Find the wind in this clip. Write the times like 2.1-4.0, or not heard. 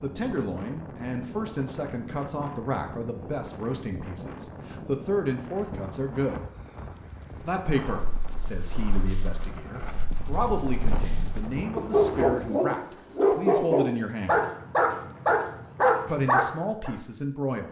0.0-12.4.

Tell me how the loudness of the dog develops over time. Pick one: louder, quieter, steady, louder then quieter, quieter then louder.
louder.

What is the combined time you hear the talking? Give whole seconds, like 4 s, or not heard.
15 s.